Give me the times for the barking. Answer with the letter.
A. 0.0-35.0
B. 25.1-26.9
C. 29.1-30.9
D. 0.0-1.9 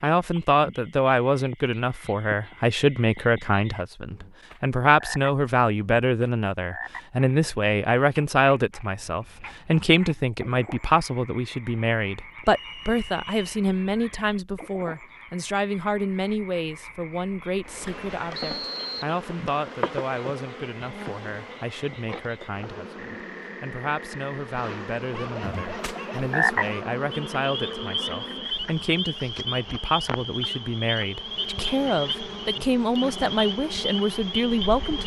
B.